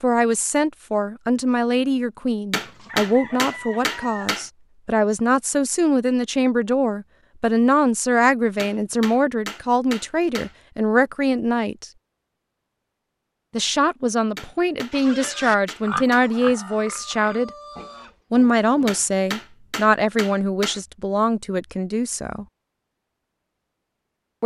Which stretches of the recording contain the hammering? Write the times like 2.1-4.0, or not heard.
2.5-4.5, 8.6-10.6, 14.3-16.2, 18.9-20.8.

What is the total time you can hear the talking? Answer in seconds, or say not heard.
20 s.